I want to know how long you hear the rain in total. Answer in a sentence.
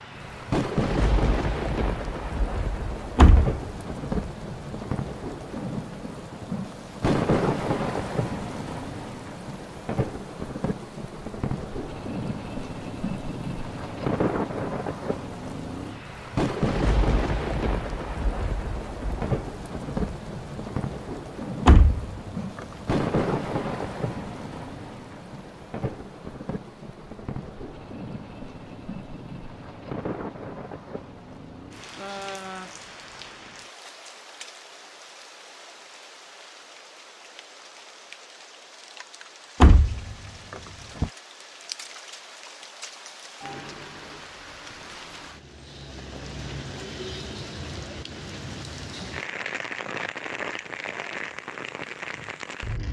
The rain can be heard for 53 seconds in total.